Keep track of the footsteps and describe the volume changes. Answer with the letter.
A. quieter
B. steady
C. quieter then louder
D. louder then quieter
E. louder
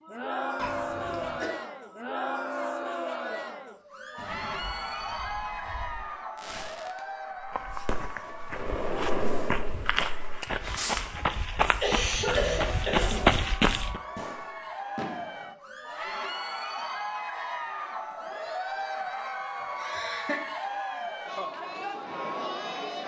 E.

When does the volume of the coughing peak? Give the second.
12 s.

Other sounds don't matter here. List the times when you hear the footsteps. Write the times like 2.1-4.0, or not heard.
7.5-14.0.